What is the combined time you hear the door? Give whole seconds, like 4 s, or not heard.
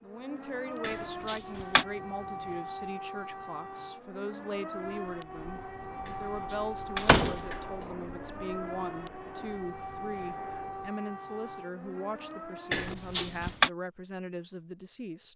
3 s.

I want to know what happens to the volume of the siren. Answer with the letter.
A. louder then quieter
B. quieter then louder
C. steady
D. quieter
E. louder
C.